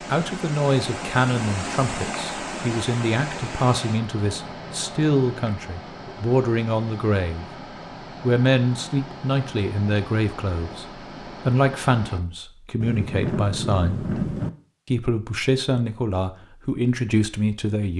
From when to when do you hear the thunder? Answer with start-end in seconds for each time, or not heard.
12.8-14.5.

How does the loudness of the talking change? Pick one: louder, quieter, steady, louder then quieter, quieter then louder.
steady.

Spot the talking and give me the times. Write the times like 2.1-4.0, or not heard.
0.1-7.5, 8.2-14.1, 14.8-17.9.